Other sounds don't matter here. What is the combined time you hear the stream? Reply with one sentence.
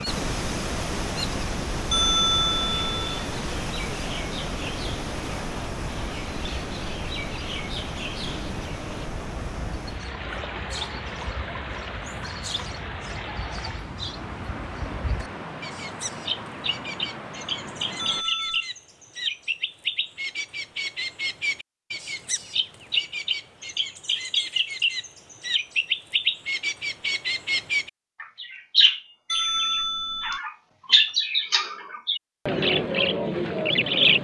The stream can be heard for 18 seconds in total.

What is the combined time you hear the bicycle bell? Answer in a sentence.
You can hear the bicycle bell for 3 seconds altogether.